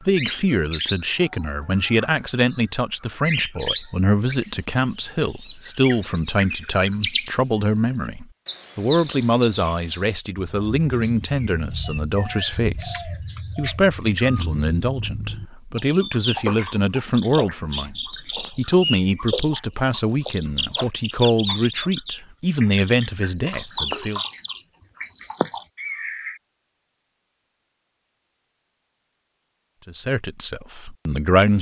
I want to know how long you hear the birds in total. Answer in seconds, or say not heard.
26 s.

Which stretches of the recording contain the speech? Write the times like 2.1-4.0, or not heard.
0.1-24.2, 29.9-31.5.